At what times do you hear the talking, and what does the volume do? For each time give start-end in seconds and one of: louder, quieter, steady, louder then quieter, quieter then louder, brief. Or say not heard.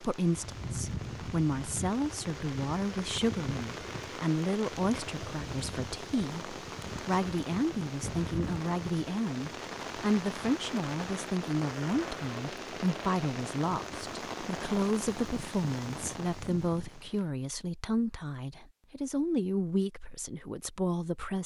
0.0-21.4 steady.